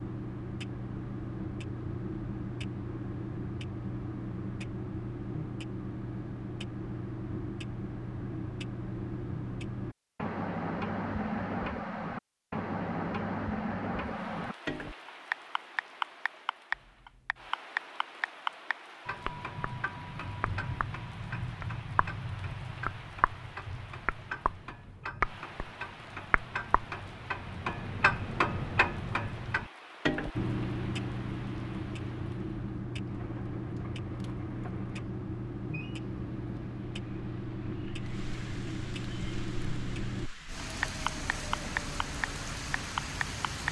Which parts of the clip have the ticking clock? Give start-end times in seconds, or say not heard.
0.0-43.6.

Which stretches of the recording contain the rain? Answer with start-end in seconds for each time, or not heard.
13.9-43.6.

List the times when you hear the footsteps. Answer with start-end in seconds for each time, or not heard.
not heard.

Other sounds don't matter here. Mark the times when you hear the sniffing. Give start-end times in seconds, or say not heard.
not heard.